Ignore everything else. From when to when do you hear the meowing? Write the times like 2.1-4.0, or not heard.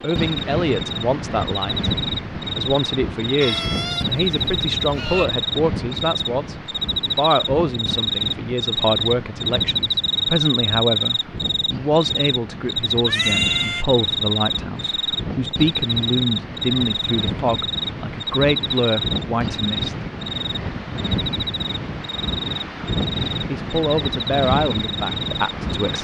3.4-5.3, 13.1-13.8.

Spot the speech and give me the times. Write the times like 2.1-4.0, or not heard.
0.0-6.5, 7.2-19.9, 23.4-25.9.